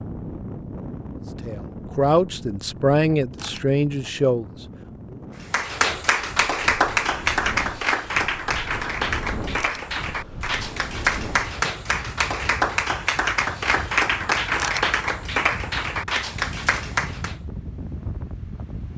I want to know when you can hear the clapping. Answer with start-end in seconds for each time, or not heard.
5.5-17.4.